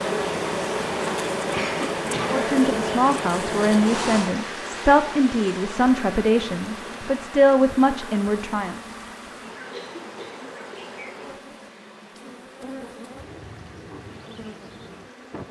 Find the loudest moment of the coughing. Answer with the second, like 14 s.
2 s.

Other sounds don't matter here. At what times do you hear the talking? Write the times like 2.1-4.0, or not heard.
2.2-8.8.